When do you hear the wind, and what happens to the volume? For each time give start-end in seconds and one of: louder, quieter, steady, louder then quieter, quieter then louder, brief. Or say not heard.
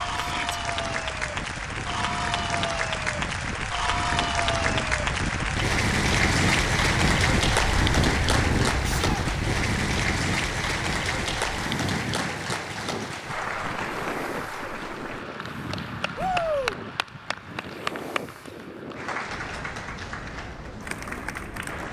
0.0-21.8 louder then quieter.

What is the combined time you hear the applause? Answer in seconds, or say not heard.
22 s.